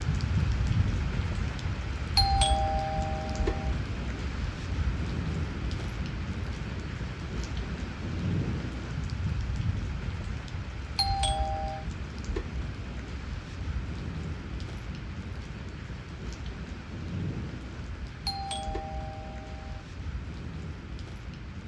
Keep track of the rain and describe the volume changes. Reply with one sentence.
The loudness of the rain goes down.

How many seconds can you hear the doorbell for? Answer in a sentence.
The doorbell can be heard for 4 seconds in total.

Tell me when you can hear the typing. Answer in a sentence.
You can't hear the typing here.